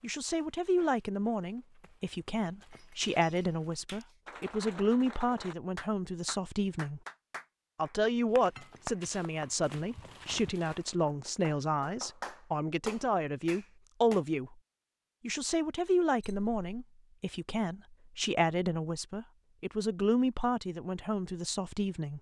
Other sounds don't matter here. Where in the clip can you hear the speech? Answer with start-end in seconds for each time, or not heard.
0.0-7.0, 7.8-14.6, 15.2-22.1.